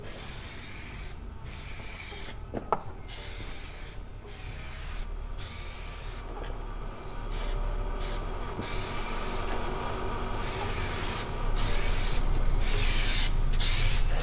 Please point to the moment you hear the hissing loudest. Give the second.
13 s.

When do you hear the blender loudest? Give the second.
10 s.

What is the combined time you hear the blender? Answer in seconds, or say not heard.
14 s.